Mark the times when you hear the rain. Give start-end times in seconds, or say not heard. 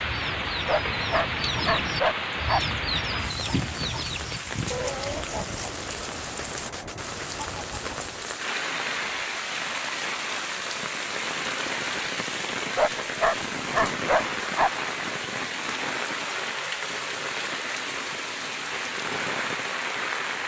0.0-20.4.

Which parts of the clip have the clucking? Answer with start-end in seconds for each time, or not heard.
0.0-8.4.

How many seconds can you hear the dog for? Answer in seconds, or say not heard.
4 s.